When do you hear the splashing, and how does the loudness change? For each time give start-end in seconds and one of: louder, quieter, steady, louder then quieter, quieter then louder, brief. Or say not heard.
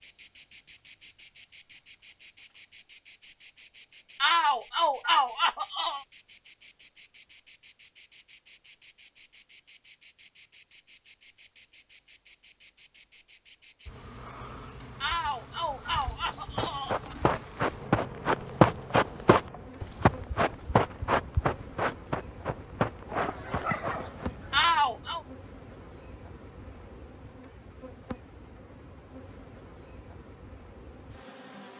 not heard.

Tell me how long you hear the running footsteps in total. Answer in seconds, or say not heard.
8 s.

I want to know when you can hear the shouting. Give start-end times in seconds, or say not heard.
4.2-6.0, 15.0-17.0, 24.5-25.2.